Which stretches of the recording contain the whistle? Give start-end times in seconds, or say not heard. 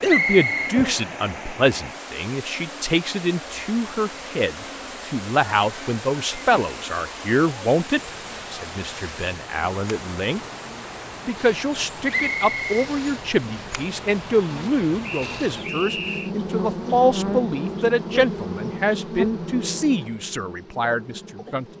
0.1-0.8, 12.1-12.8, 15.0-16.3.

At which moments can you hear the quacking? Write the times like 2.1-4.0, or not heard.
not heard.